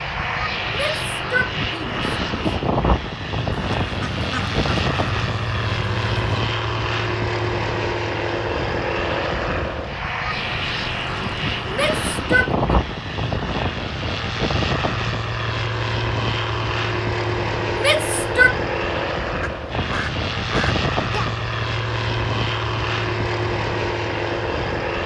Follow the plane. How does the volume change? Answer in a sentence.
The volume of the plane stays about the same.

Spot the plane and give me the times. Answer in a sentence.
You can hear the plane from 0.0 to 25.0 s.